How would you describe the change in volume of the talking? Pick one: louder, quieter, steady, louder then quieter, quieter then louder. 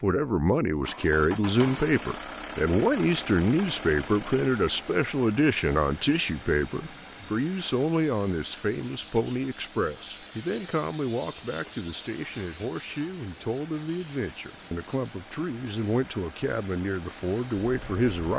quieter.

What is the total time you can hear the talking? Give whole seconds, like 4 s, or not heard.
18 s.